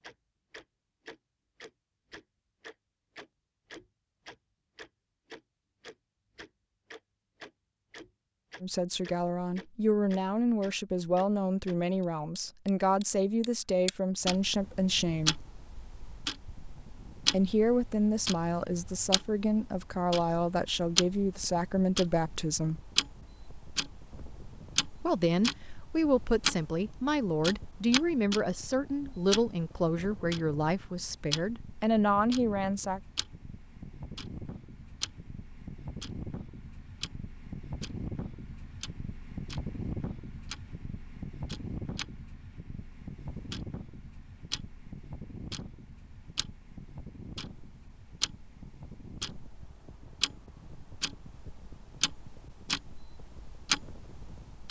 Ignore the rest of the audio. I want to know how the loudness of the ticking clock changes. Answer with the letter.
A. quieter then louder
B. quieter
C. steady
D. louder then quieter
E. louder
A.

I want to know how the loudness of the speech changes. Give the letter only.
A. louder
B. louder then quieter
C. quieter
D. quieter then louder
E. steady
E.